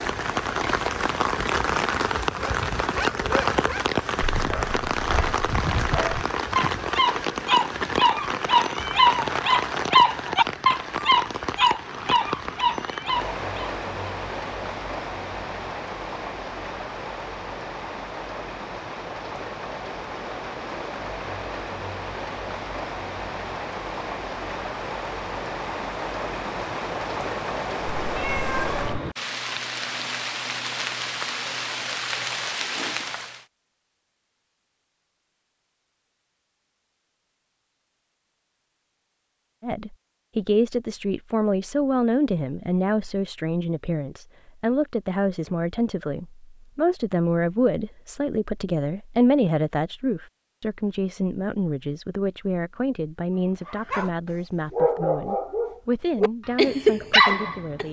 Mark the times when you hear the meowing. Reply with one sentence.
You can hear the meowing from 27.9 to 29.0 s.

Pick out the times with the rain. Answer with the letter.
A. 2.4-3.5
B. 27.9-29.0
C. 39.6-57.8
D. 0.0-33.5
D.